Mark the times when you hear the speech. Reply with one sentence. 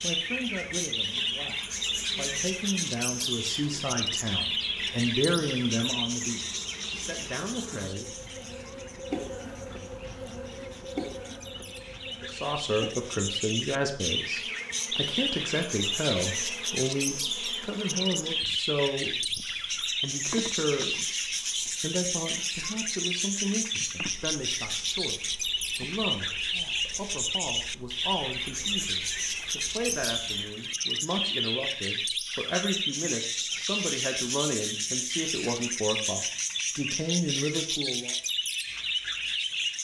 The speech can be heard from 0.0 to 8.1 s and from 12.2 to 38.1 s.